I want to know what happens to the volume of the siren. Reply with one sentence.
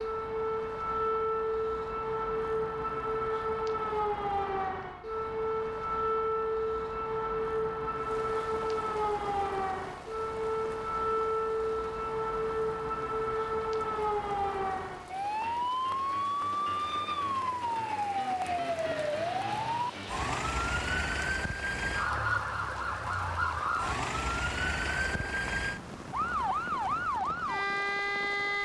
The volume of the siren stays about the same.